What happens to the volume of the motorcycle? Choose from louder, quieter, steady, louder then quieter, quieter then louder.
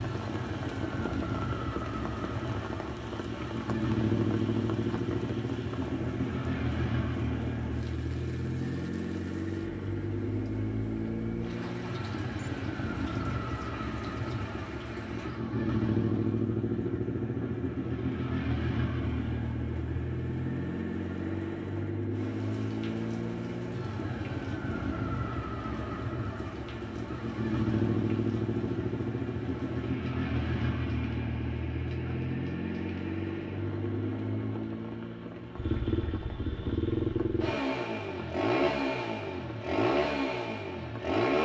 steady.